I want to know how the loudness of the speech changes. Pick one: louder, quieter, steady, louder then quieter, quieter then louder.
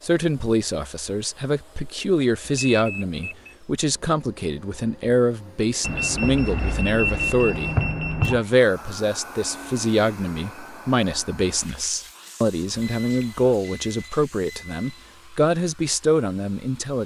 steady.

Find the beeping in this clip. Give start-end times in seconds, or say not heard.
2.4-3.5, 5.8-8.4, 12.8-15.2.